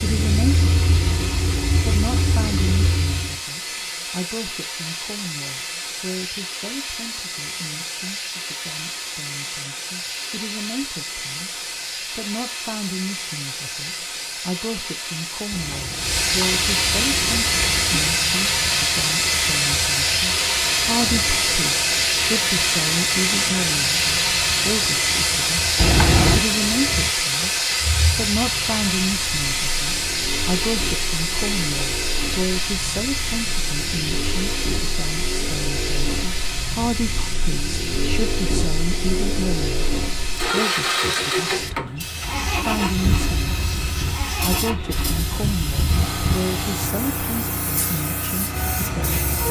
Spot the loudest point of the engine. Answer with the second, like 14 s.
41 s.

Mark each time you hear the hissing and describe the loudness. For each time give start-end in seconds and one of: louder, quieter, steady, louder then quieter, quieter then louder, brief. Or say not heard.
0.0-49.4 louder then quieter.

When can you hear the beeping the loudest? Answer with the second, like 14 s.
26 s.